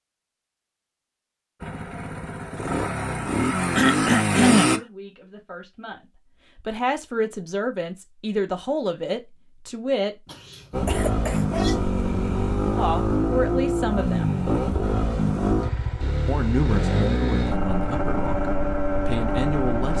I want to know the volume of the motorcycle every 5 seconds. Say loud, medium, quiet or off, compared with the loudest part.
loud, off, loud, loud.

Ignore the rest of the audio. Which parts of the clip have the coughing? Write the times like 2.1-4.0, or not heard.
3.8-4.8, 10.2-11.8.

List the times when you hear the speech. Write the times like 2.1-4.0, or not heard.
4.7-10.2, 12.8-14.3, 16.2-19.9.